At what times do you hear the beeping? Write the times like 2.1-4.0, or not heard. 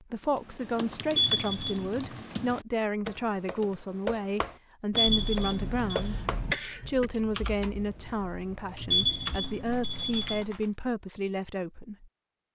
1.1-1.9, 5.0-6.0, 8.8-10.4.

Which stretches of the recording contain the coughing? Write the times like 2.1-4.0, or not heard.
5.0-7.1.